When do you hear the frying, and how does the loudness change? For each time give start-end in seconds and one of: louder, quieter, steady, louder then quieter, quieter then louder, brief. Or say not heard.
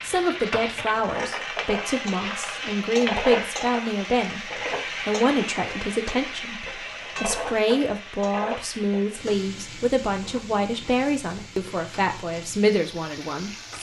0.0-13.7 quieter.